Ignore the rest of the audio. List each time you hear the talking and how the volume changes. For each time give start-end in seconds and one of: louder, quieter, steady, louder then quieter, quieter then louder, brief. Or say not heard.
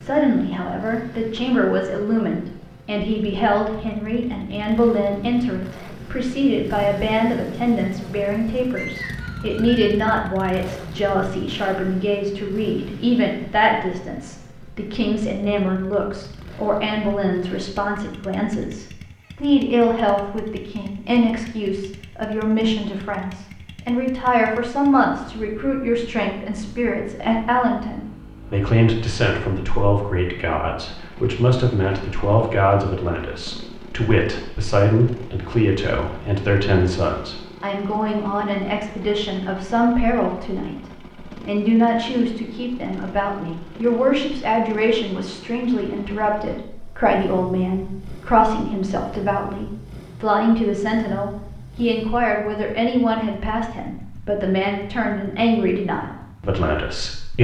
0.0-40.8 steady
41.4-57.3 steady.